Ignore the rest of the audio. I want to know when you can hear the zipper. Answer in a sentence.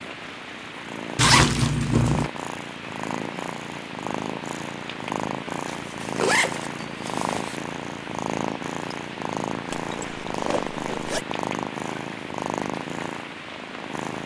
The zipper can be heard from 1.1 to 2.3 s, from 5.7 to 7.6 s and from 9.7 to 11.2 s.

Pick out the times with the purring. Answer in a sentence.
You can hear the purring from 0.0 to 14.2 s.